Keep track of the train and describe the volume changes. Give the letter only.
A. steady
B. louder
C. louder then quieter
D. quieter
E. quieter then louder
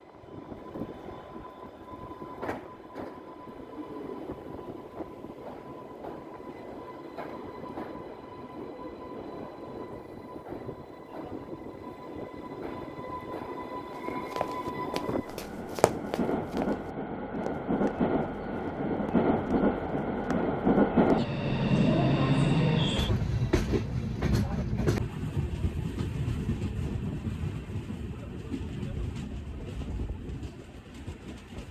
C.